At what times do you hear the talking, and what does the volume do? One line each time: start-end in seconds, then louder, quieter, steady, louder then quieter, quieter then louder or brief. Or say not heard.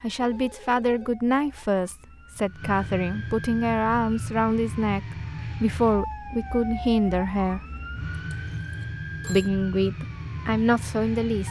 0.0-7.6 steady
9.2-11.4 brief.